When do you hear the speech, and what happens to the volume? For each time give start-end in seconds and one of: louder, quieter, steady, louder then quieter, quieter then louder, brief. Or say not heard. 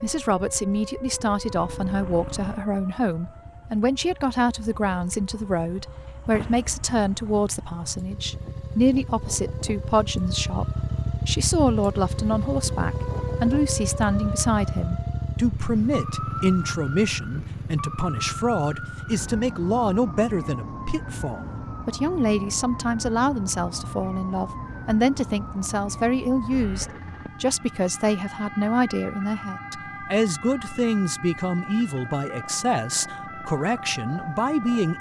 0.0-34.9 steady.